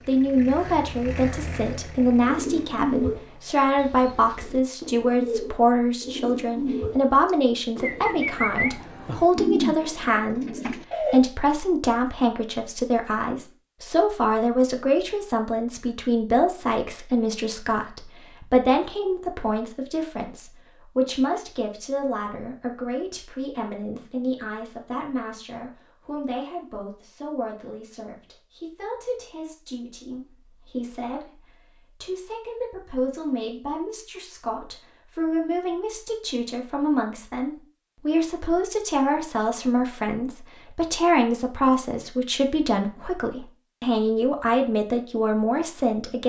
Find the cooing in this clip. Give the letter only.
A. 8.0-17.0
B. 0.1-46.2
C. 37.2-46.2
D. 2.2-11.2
D.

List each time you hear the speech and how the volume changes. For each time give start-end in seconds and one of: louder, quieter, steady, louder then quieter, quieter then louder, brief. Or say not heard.
0.1-46.2 quieter then louder.